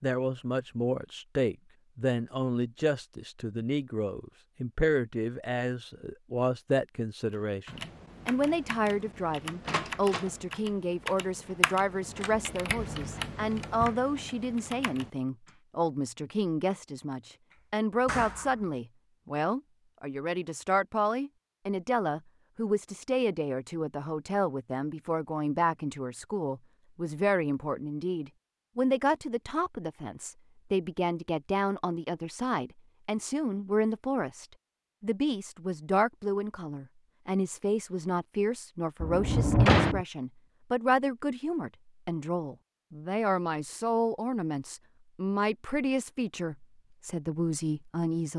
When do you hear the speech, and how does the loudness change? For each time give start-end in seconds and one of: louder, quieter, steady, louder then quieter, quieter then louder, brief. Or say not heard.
0.0-48.3 steady.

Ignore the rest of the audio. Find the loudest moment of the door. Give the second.
40 s.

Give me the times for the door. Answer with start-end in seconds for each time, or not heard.
9.7-10.3, 18.1-18.6, 39.0-40.0.